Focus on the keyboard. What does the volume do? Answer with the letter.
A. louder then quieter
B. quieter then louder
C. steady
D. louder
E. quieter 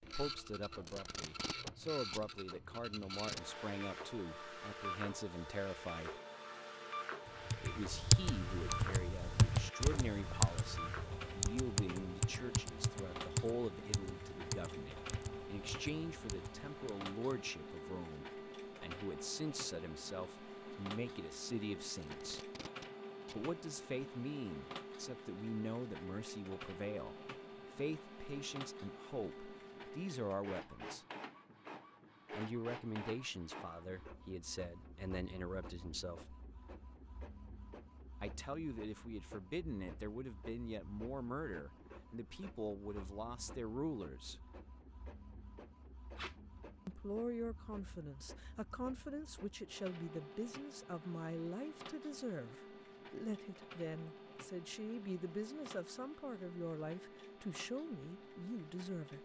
E.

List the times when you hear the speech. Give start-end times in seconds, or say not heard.
0.0-6.2, 7.6-22.5, 23.3-31.1, 32.3-36.4, 38.2-44.4, 46.9-59.1.